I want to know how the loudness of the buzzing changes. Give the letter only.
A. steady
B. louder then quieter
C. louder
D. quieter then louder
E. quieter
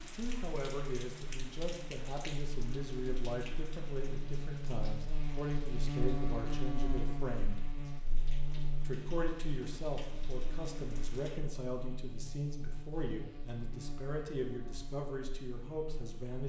B.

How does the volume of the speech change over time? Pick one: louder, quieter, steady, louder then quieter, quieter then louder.
steady.